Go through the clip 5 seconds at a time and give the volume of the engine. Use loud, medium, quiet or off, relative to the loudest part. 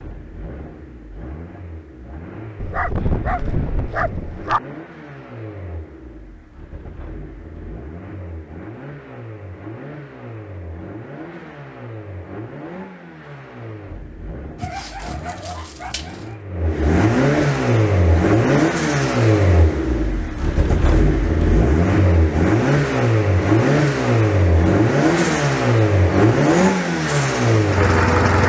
quiet, quiet, quiet, loud, loud, loud.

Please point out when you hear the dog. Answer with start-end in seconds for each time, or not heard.
2.5-4.6, 14.6-16.4.